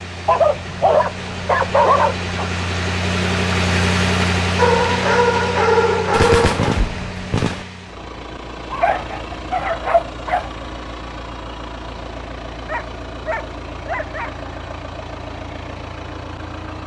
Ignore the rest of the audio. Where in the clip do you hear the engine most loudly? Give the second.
4 s.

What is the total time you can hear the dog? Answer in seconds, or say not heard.
8 s.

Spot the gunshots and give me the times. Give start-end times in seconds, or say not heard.
6.1-7.7.